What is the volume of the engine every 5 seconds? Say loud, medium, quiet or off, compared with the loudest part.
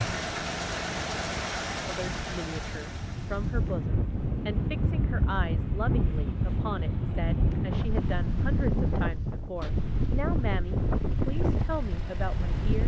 loud, off, quiet.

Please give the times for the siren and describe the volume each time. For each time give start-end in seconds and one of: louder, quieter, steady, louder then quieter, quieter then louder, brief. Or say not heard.
not heard.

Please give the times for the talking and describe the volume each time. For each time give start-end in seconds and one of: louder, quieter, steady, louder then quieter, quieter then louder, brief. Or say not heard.
1.9-12.8 steady.